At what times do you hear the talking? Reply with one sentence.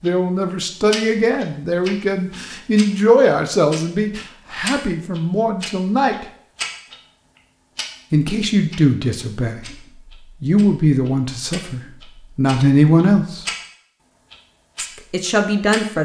You can hear the talking from 0.0 to 6.2 s, from 8.1 to 9.8 s, from 10.4 to 13.4 s and from 14.8 to 15.9 s.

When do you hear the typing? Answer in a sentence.
The typing can't be heard in this clip.